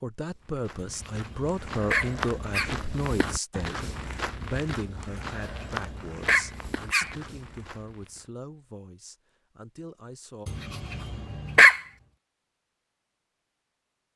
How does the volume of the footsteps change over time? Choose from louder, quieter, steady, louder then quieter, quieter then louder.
quieter.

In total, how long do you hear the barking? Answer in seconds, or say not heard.
5 s.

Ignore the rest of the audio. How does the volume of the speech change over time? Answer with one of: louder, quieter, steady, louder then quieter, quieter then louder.
quieter.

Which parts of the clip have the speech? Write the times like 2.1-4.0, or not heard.
0.0-10.5.